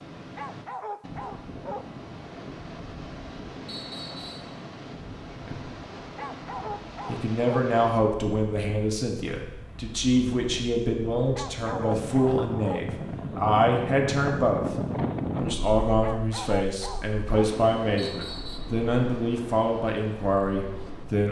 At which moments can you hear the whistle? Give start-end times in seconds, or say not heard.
3.6-4.5, 17.9-18.6.